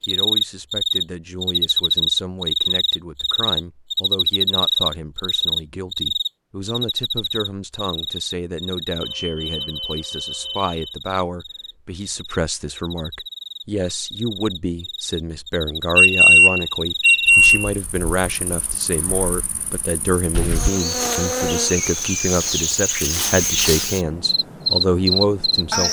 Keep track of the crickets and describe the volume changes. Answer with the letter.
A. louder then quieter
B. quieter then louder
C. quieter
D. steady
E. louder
B.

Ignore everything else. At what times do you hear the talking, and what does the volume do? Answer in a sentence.
The talking can be heard from 0.1 to 25.8 s, getting louder.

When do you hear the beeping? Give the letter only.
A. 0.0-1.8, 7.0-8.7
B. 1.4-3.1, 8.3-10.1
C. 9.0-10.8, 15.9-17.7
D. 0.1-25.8
C.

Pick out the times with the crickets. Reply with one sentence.
You can hear the crickets from 0.0 to 25.8 s.